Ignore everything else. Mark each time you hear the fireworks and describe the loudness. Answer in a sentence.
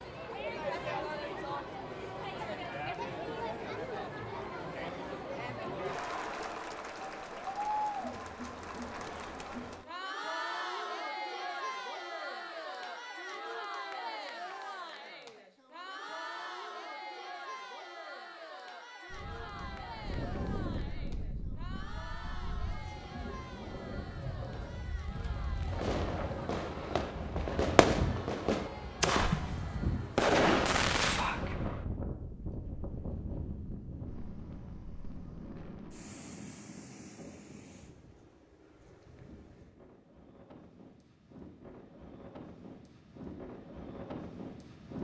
The fireworks can be heard from 25.7 to 31.9 s, getting louder.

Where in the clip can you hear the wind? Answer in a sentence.
The wind can be heard from 19.1 to 44.9 s.